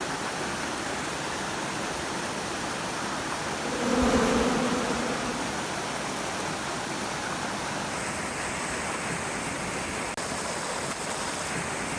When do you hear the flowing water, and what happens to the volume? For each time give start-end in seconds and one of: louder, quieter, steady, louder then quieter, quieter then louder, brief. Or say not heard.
0.0-11.9 steady.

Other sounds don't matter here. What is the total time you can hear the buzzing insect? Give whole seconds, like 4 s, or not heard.
2 s.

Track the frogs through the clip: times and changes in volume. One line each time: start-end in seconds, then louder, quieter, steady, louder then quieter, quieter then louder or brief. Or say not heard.
not heard.